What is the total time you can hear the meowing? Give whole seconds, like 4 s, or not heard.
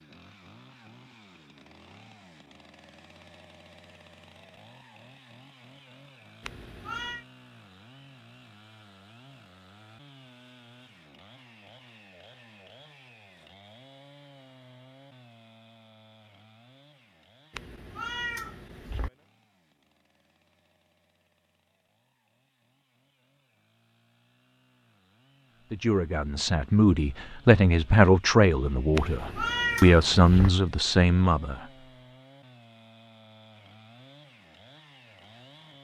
4 s.